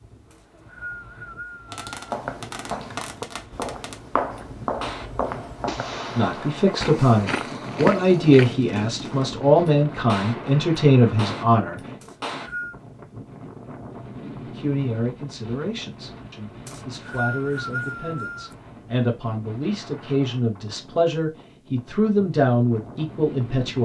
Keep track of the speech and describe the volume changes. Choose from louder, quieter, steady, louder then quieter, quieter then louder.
quieter then louder.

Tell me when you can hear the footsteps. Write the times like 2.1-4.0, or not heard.
2.0-8.6.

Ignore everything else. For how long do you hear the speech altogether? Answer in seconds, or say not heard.
15 s.